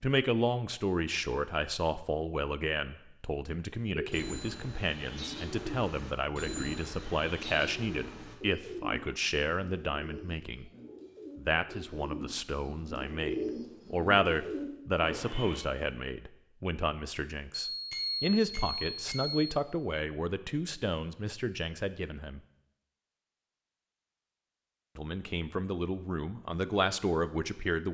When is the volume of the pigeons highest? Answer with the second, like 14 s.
13 s.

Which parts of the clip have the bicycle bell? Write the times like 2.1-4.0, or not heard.
17.6-19.5.